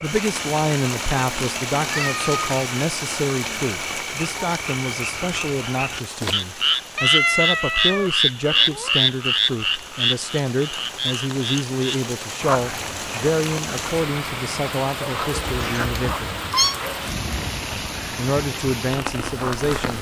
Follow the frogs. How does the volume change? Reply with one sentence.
The loudness of the frogs goes up, then down.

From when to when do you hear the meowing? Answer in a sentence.
The meowing can be heard from 1.9 to 2.7 s, from 7.0 to 9.0 s and from 15.3 to 16.8 s.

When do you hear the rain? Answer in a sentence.
The rain can be heard from 0.0 to 19.9 s.